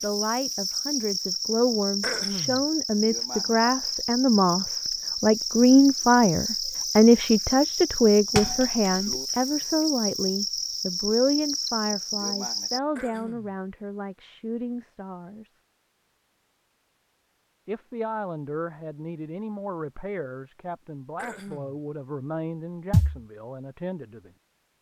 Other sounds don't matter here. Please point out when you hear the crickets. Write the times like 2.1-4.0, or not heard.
0.0-12.8.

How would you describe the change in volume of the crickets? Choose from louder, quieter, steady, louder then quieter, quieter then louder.
steady.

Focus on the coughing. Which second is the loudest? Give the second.
2 s.